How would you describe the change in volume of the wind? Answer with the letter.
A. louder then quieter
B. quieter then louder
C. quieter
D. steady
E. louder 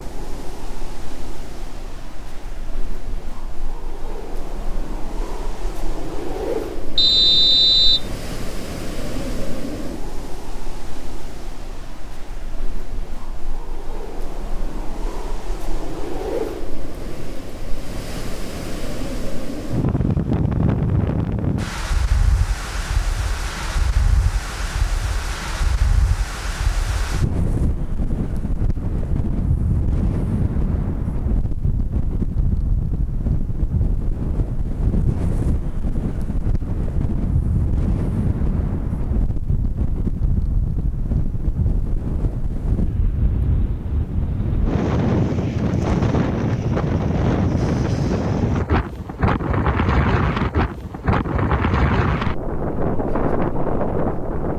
E.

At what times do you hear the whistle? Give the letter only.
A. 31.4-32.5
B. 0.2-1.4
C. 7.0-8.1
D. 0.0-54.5
C.